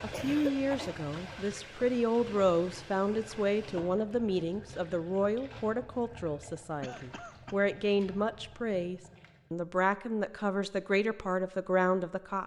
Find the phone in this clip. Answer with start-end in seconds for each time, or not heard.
not heard.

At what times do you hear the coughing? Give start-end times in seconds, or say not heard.
0.1-0.9, 6.8-7.5.